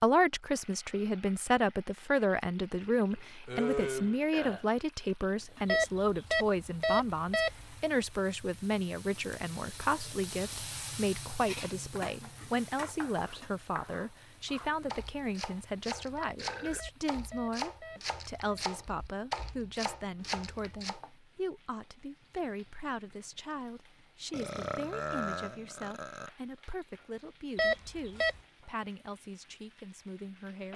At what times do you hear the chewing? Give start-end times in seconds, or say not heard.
not heard.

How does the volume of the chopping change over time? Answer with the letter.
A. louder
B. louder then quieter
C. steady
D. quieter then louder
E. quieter
A.